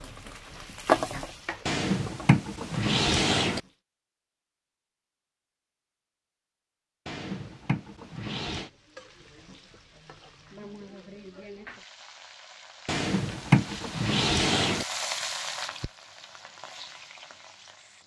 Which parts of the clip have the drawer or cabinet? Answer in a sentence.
You can hear the drawer or cabinet from 1.6 to 3.6 s, from 7.0 to 8.7 s and from 12.8 to 14.8 s.